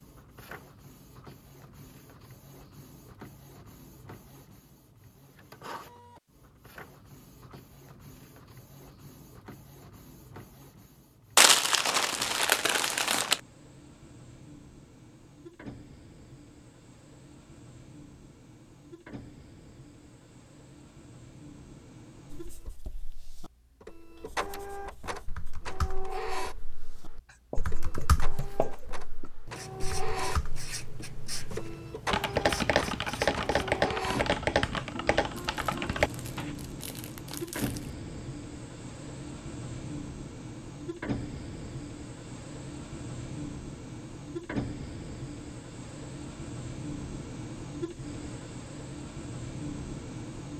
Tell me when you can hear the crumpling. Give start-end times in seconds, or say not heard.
11.3-13.4, 35.4-37.9.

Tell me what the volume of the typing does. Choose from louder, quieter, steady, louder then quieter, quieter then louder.
louder.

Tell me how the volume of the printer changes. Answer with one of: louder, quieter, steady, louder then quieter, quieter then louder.
louder.